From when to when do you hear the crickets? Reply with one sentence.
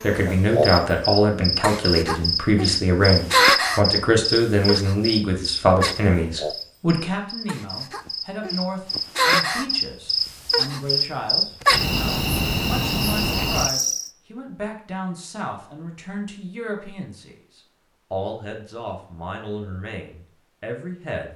The crickets can be heard from 0.0 to 14.1 s.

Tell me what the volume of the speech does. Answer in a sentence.
The volume of the speech goes down.